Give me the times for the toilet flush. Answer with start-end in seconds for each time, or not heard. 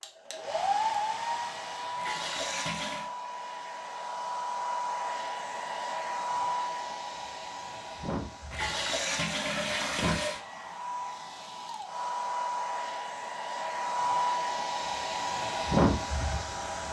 1.9-3.1, 8.5-10.4.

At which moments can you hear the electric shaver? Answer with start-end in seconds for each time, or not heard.
not heard.